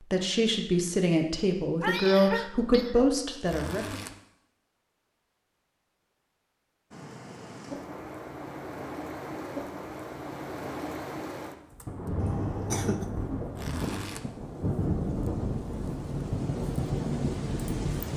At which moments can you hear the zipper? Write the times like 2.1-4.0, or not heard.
3.5-4.2, 13.6-14.2.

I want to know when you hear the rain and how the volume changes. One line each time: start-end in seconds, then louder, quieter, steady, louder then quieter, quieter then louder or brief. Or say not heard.
6.9-18.1 louder.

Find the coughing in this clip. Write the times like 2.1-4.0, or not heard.
1.8-3.1, 12.2-13.1.